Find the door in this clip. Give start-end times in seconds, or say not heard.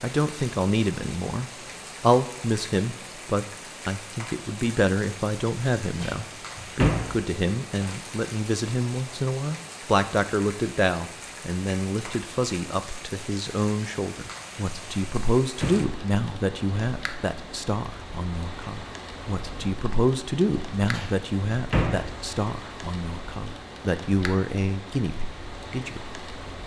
6.0-7.2, 14.8-15.9, 20.9-22.1.